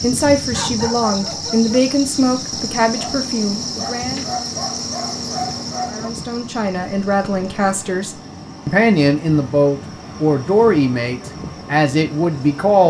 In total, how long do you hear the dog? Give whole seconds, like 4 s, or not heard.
6 s.